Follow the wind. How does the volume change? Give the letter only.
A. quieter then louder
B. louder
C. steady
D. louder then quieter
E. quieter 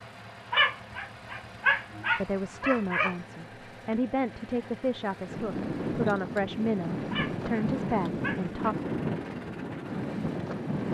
C.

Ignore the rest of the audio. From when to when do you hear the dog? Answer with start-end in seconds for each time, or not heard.
0.5-3.1, 7.1-8.6.